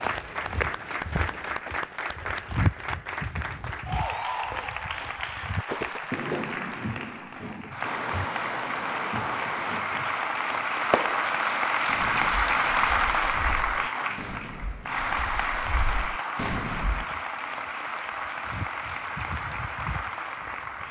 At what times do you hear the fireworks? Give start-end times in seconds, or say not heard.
5.7-17.1.